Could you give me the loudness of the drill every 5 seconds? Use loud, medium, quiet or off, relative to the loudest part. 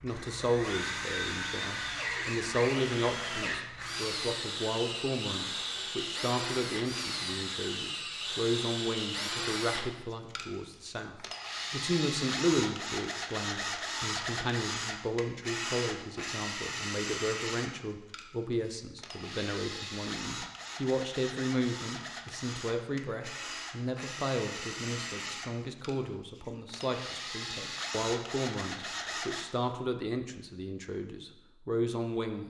loud, loud, loud, loud, medium, loud, off.